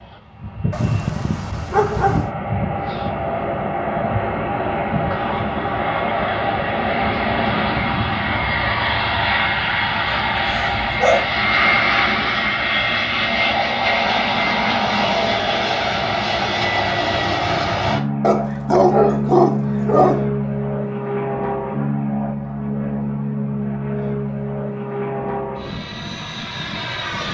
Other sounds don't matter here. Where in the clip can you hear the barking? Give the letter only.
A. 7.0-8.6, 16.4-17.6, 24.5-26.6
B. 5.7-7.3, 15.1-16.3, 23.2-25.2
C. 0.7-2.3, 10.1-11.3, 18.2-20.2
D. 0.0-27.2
C.